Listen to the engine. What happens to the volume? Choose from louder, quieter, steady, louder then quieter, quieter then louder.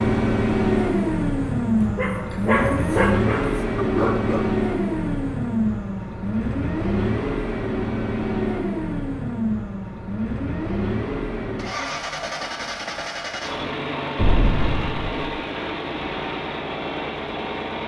quieter.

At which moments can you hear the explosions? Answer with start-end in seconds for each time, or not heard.
14.2-15.3.